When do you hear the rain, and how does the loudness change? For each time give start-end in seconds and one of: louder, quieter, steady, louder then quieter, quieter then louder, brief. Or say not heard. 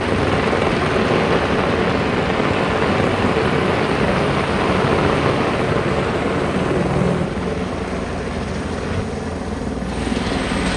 0.0-10.7 quieter.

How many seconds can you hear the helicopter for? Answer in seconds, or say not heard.
11 s.